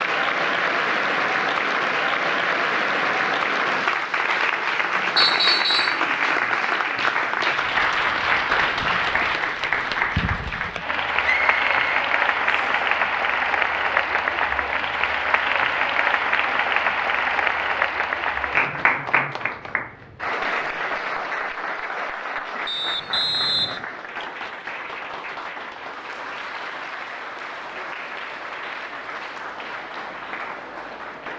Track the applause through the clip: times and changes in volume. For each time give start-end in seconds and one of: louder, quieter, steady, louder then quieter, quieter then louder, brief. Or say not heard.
0.0-31.3 quieter.